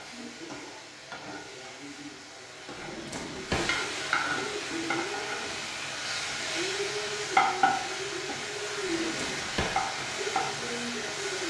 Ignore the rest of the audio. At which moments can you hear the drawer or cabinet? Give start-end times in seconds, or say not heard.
2.8-3.8, 8.8-9.8.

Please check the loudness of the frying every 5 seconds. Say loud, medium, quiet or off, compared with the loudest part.
medium, loud, loud.